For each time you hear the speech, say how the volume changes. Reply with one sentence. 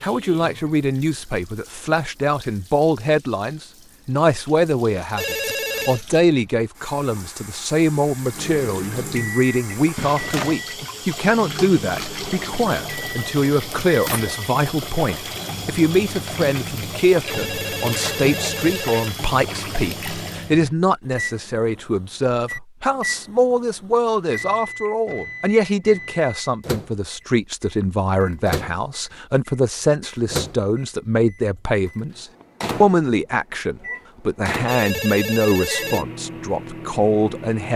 You can hear the speech from 0.0 to 37.7 s, at a steady volume.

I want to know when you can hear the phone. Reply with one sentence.
The phone can be heard from 5.2 to 6.0 s, from 17.2 to 19.1 s and from 34.6 to 36.0 s.